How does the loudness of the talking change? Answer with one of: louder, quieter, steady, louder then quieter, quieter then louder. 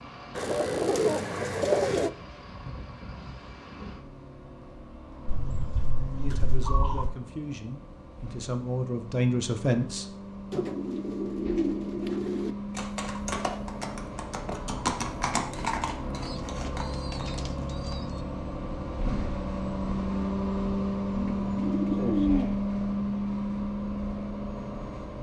louder.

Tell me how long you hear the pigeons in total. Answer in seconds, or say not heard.
9 s.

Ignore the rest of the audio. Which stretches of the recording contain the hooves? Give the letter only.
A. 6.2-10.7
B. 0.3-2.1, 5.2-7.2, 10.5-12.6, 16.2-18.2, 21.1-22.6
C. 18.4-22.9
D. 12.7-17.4
D.